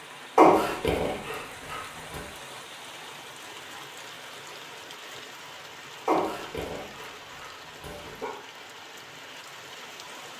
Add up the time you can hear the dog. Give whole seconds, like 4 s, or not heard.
4 s.